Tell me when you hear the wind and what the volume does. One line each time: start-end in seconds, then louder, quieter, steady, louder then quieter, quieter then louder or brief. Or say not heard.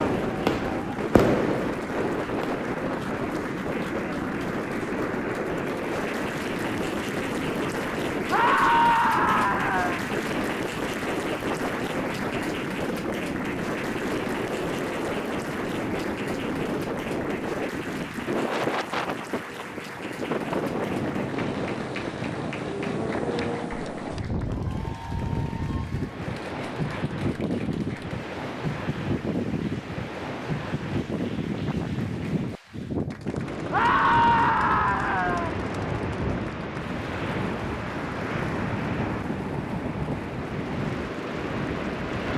0.0-42.3 steady.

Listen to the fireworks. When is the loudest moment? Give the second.
1 s.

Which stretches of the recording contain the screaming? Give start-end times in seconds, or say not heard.
8.3-10.0, 33.7-35.5.